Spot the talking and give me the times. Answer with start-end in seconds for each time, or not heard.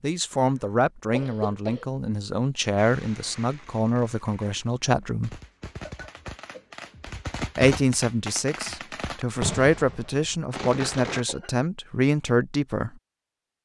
0.0-5.4, 7.5-12.9.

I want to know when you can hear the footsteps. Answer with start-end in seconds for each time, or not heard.
not heard.